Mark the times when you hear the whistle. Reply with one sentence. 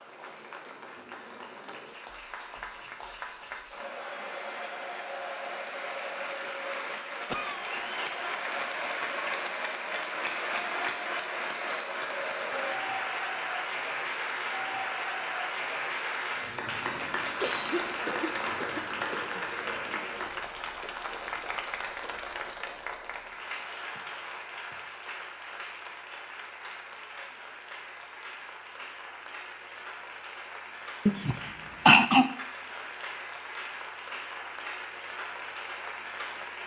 The whistle can't be heard in this clip.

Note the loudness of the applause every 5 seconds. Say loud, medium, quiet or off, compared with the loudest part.
medium, loud, loud, loud, medium, medium, medium, medium.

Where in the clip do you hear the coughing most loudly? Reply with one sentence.
The volume of the coughing peaks at 32 seconds.